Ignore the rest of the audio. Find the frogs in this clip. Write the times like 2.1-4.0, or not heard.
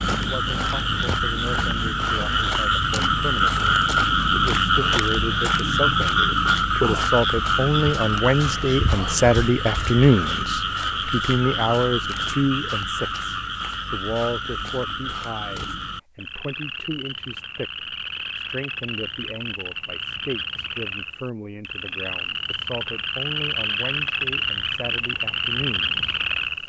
0.0-26.6.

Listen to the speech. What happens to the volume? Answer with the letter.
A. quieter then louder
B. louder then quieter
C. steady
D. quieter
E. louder
B.